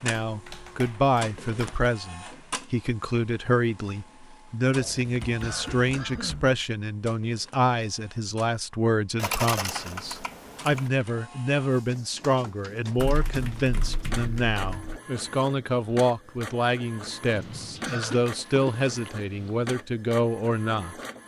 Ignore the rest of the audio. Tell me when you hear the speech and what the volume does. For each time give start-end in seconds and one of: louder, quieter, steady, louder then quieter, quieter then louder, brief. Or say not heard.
0.0-20.9 steady.